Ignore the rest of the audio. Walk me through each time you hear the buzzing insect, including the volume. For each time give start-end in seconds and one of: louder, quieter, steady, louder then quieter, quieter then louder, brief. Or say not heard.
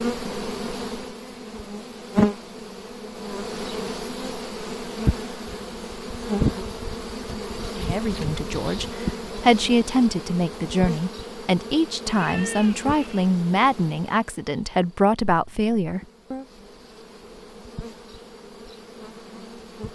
0.0-19.8 quieter.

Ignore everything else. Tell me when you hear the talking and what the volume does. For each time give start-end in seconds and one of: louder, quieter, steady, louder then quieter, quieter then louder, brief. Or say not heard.
7.8-16.4 steady.